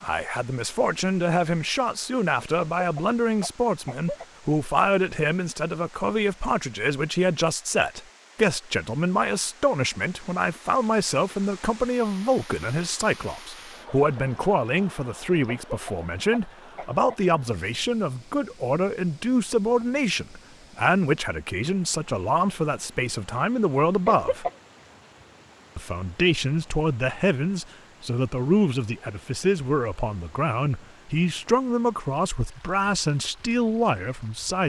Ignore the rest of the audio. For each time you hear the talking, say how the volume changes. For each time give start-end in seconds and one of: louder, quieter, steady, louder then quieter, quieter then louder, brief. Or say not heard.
0.0-24.4 steady
25.8-34.6 steady.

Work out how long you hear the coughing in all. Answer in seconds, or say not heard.
4 s.